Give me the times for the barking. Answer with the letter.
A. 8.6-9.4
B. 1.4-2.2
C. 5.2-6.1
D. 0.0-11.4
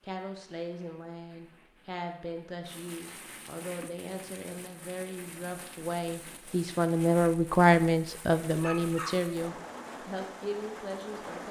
A.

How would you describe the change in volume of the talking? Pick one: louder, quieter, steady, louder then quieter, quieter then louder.
louder then quieter.